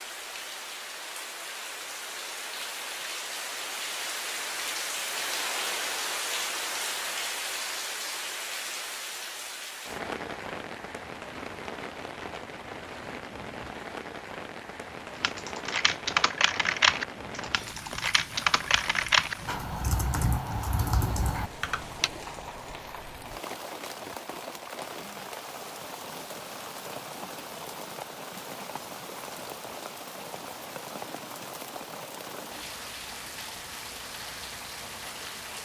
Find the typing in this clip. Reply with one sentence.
The typing can be heard from 15.2 to 22.1 s.